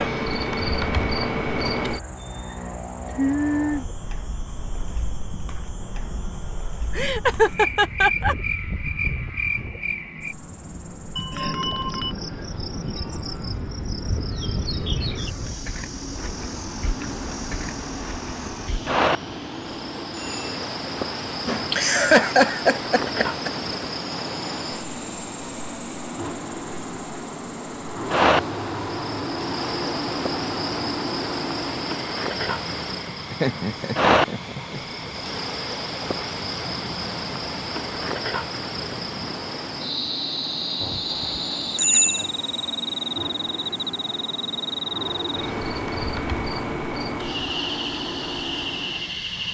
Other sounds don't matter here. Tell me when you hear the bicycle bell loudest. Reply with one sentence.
The loudest moment of the bicycle bell is at 42 seconds.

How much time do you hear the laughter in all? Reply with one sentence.
The laughter can be heard for 5 seconds in total.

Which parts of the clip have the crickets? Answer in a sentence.
You can hear the crickets from 0.0 to 49.4 s.